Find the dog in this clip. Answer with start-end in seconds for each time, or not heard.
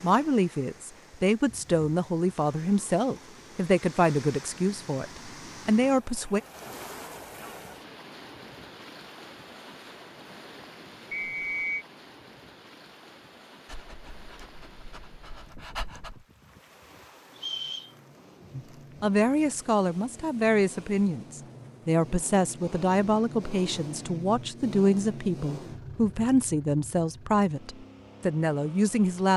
13.7-16.2.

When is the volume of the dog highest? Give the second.
16 s.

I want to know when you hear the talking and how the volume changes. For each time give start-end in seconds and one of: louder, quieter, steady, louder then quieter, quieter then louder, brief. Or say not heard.
0.0-6.4 steady
18.6-29.3 steady.